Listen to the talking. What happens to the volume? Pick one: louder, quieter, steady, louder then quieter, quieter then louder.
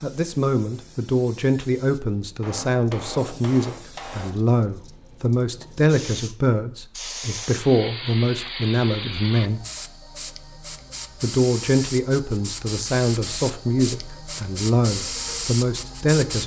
steady.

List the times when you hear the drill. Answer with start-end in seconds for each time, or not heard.
not heard.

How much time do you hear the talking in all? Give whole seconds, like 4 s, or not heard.
15 s.